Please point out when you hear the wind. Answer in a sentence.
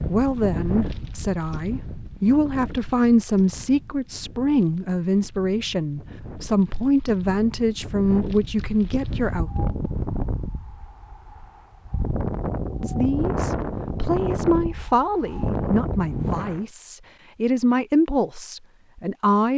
The wind can be heard from 0.0 to 16.6 s.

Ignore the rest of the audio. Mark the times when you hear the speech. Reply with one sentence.
The speech can be heard from 0.0 to 9.5 s and from 12.8 to 19.5 s.